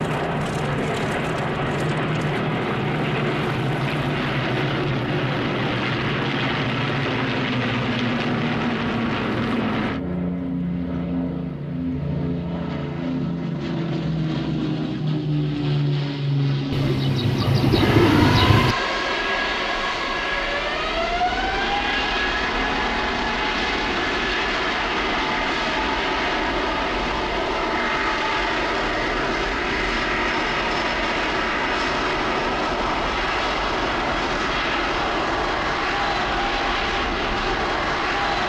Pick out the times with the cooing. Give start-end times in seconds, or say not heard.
16.7-18.8.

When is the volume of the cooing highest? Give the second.
18 s.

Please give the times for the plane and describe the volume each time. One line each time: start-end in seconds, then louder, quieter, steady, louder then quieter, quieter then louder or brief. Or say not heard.
0.0-38.4 steady.